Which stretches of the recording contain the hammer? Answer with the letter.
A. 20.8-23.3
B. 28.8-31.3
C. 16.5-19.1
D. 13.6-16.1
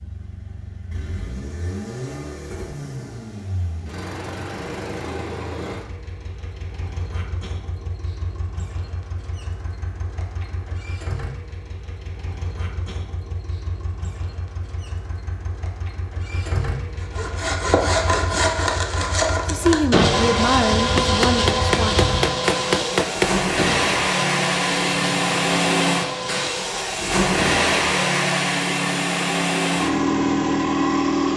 A.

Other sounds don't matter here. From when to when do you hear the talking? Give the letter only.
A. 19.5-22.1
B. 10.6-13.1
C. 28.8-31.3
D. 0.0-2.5
A.